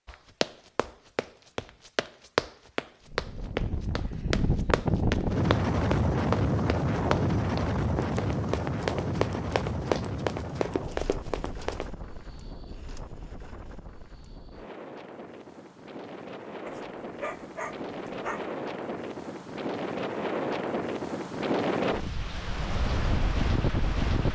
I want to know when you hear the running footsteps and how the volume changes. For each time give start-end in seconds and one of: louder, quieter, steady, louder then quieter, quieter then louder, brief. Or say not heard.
0.1-11.9 steady.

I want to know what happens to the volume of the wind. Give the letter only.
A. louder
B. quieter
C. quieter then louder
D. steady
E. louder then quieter
C.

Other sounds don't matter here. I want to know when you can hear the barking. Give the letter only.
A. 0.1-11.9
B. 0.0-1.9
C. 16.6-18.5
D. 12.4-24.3
C.